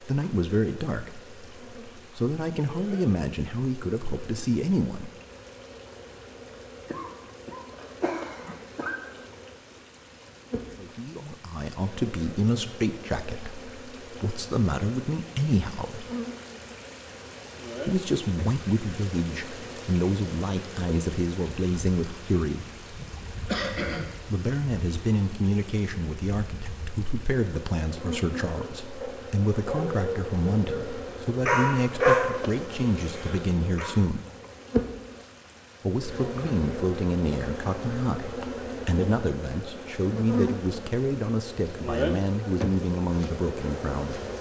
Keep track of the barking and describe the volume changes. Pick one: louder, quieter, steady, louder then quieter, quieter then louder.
louder then quieter.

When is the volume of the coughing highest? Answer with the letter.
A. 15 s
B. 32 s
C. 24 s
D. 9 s
C.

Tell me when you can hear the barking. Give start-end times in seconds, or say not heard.
28.5-34.0.